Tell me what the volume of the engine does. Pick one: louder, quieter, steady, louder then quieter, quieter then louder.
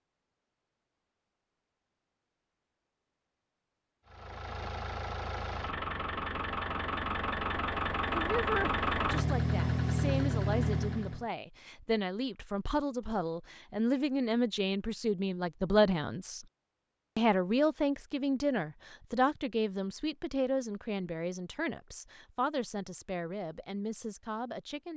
louder.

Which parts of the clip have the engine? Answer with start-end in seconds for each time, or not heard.
4.0-11.2.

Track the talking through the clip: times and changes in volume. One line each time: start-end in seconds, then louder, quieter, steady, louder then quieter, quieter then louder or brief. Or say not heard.
8.1-16.4 louder
17.1-24.9 quieter.